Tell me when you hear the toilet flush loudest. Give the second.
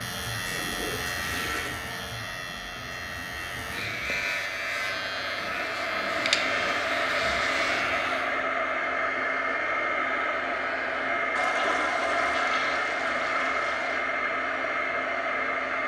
12 s.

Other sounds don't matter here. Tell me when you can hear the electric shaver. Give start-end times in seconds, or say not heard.
0.0-8.5.